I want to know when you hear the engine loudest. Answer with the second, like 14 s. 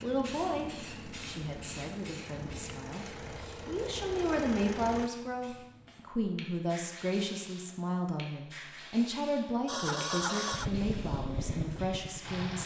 10 s.